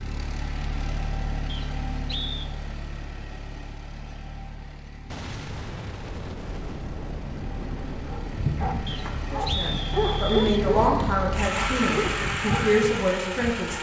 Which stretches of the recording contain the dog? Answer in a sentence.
The dog can be heard from 8.1 to 13.7 s.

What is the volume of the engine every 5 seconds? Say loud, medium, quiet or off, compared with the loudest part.
medium, medium, loud.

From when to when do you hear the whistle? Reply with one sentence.
The whistle can be heard from 1.4 to 2.5 s and from 8.8 to 10.5 s.